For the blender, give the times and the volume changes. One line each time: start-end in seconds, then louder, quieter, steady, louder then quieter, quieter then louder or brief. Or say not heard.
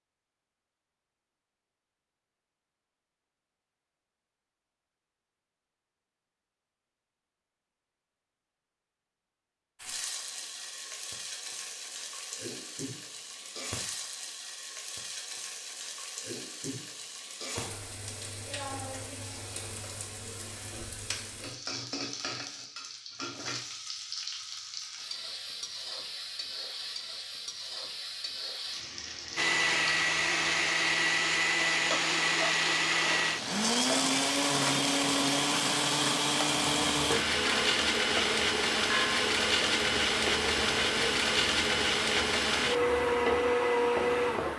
29.4-44.5 steady.